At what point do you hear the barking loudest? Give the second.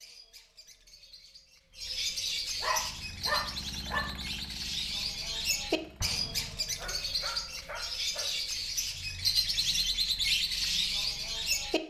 3 s.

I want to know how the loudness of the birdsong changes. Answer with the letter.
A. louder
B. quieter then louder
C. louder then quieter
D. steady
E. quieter
A.